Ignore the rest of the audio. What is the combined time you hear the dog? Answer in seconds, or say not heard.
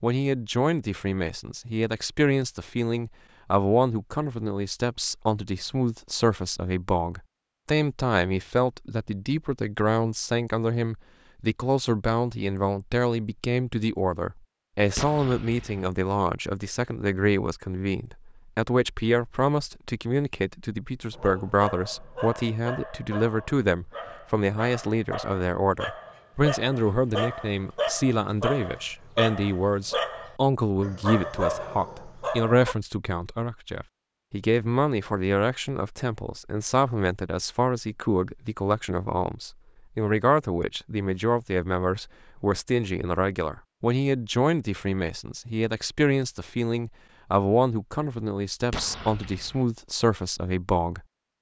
12 s.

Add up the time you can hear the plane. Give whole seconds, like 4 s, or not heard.
not heard.